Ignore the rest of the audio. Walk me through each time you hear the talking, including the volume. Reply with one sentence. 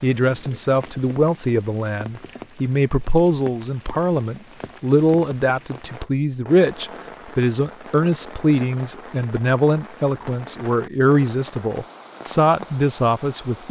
The talking can be heard from 0.0 to 13.6 s, at a steady volume.